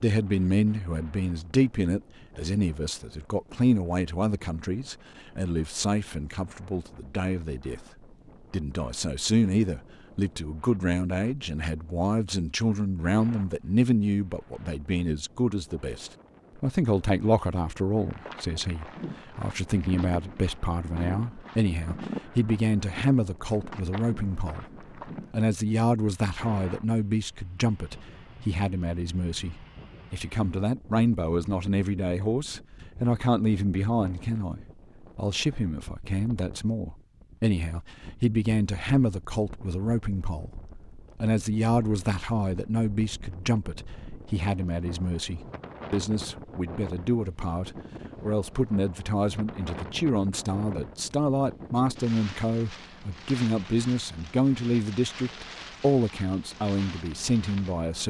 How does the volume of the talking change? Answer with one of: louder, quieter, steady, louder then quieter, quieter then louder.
steady.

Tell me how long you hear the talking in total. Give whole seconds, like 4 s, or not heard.
57 s.